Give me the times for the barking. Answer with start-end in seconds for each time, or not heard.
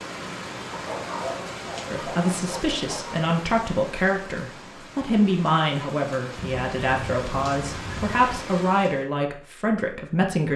0.7-3.3, 6.3-8.2.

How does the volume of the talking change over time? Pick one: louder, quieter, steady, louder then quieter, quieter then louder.
steady.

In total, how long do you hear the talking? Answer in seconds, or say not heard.
9 s.